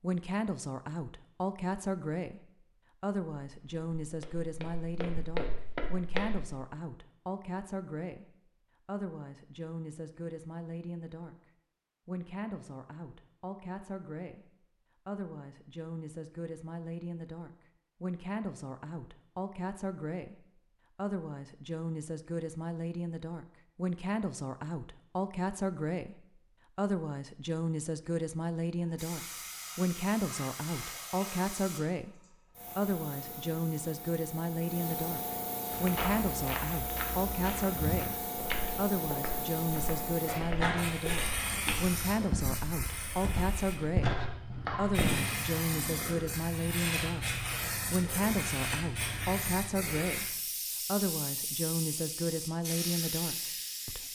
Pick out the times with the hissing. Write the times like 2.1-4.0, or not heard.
28.8-54.1.